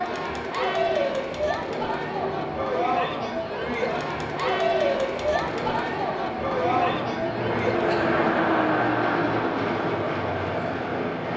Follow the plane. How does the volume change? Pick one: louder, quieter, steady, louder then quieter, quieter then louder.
louder.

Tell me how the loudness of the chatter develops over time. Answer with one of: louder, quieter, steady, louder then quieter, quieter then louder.
steady.